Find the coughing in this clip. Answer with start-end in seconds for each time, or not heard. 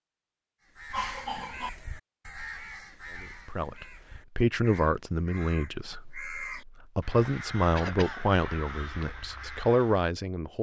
0.9-1.7, 7.8-8.2.